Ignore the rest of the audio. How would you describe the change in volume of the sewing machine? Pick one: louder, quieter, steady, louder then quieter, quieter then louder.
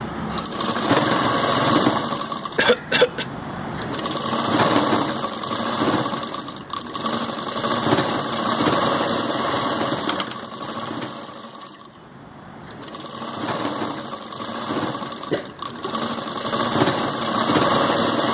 quieter then louder.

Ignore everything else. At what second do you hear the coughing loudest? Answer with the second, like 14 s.
3 s.